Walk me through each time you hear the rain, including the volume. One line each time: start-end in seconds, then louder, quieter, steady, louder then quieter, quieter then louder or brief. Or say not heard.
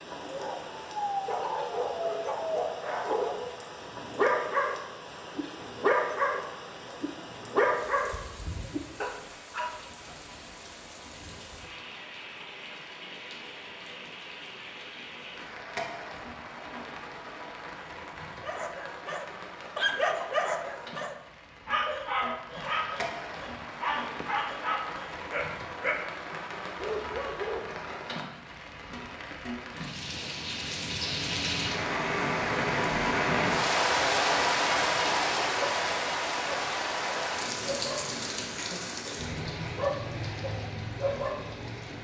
0.0-42.0 louder.